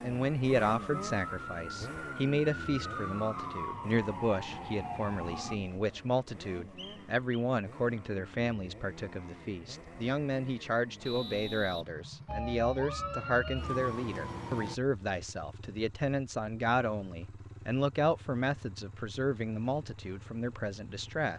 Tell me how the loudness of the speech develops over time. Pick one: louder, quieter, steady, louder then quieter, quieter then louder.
steady.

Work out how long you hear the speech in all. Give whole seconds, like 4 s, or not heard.
21 s.